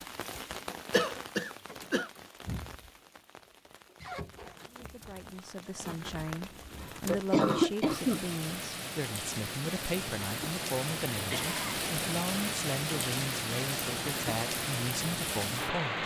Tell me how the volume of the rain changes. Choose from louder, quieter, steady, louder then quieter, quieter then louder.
louder.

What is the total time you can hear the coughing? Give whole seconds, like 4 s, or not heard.
3 s.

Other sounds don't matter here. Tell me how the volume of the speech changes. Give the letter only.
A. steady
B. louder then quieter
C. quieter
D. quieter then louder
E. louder
A.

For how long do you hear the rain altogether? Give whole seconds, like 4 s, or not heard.
16 s.